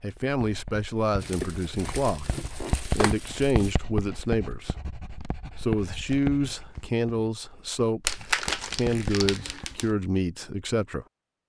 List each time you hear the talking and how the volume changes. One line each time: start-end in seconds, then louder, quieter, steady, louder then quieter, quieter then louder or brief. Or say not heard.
0.0-11.1 steady.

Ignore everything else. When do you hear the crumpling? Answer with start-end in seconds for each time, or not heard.
1.2-3.8, 8.1-9.9.